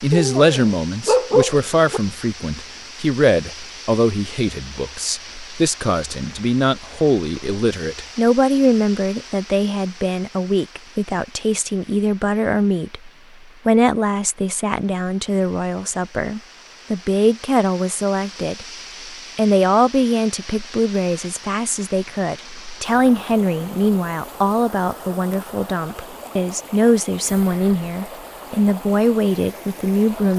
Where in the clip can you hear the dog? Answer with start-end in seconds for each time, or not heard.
0.1-2.0.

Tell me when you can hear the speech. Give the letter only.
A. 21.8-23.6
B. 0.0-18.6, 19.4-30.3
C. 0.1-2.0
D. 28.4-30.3
B.